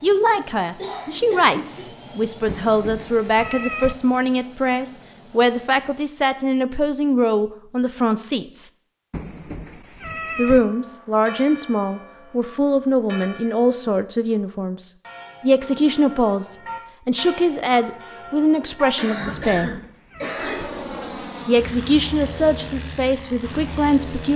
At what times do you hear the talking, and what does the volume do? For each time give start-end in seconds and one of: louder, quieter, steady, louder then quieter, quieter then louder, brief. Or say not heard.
0.0-8.7 steady
10.3-19.8 steady
21.4-24.3 brief.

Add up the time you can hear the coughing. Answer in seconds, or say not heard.
3 s.